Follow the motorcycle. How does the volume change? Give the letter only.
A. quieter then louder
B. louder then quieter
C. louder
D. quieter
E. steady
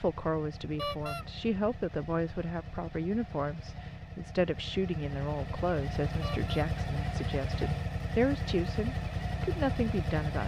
C.